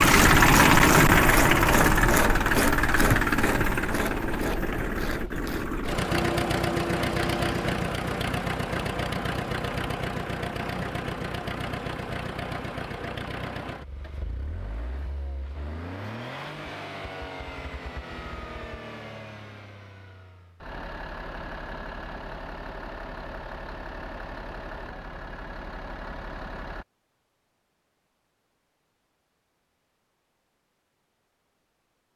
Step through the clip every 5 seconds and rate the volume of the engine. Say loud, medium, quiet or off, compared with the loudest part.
loud, medium, quiet, quiet, quiet, quiet, off.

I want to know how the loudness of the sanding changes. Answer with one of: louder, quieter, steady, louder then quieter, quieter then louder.
quieter then louder.